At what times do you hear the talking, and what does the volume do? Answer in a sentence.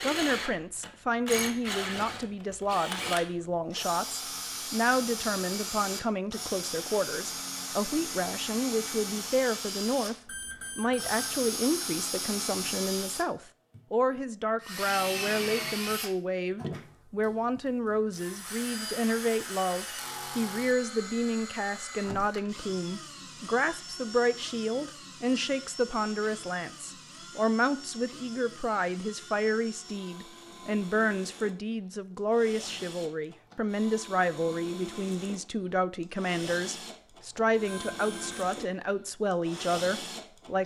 You can hear the talking from 0.0 to 40.6 s, at a steady volume.